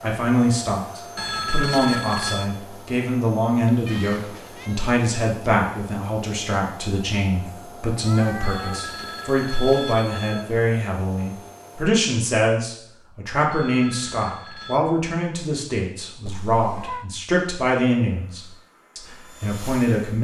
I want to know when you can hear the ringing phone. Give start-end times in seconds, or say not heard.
1.1-2.5, 8.4-10.4, 13.5-14.8.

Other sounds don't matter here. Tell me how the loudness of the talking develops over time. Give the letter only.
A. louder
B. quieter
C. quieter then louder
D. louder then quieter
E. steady
E.